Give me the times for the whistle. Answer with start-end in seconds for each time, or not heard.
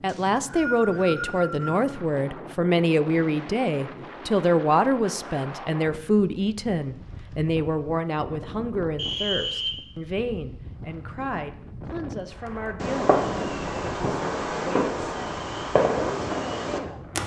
0.1-1.8, 8.9-9.8.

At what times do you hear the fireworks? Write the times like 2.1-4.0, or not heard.
12.4-17.2.